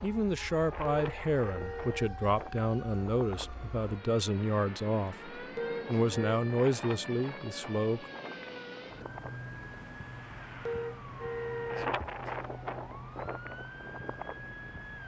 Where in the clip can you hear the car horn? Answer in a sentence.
You can hear the car horn from 0.8 to 2.1 s, from 5.5 to 6.4 s and from 10.7 to 11.9 s.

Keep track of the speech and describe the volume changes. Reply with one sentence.
The loudness of the speech stays about the same.